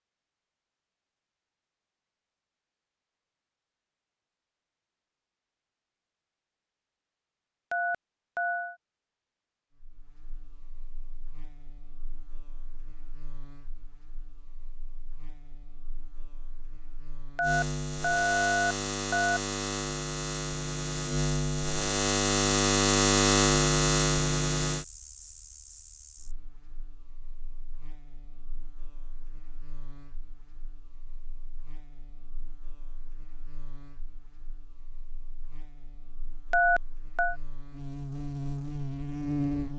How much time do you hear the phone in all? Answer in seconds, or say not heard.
4 s.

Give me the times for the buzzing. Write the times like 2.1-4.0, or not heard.
9.8-39.7.